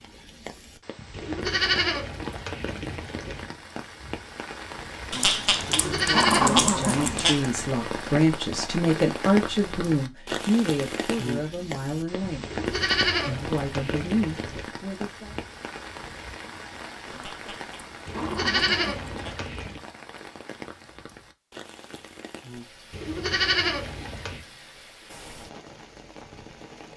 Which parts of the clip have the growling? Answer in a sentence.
The growling can be heard from 5.1 to 7.5 s and from 17.1 to 19.4 s.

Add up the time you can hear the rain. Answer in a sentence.
The rain can be heard for 27 seconds in total.